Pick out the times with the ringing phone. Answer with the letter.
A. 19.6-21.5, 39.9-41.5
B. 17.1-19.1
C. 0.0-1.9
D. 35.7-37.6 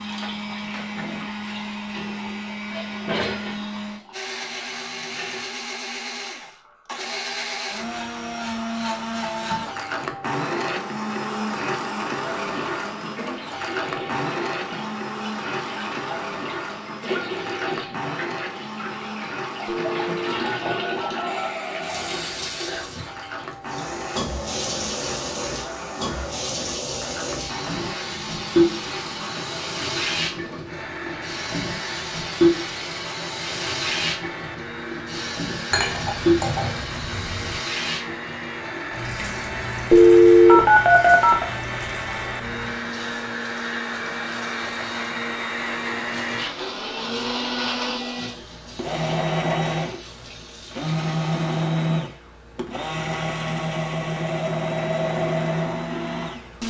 A.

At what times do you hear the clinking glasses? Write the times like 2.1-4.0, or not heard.
35.7-37.6.